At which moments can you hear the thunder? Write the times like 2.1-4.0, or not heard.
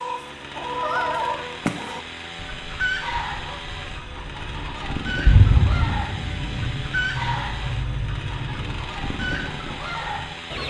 5.2-6.7.